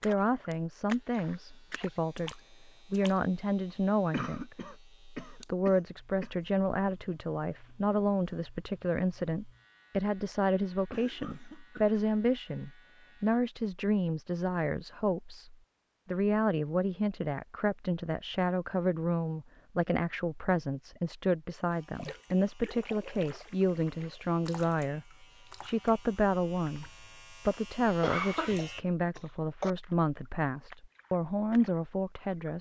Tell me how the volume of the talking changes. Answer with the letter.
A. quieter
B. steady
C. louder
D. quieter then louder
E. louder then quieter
B.